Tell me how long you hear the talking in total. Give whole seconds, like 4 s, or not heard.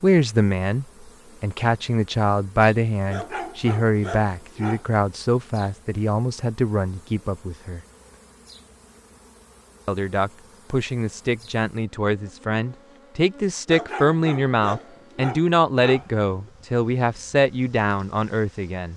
17 s.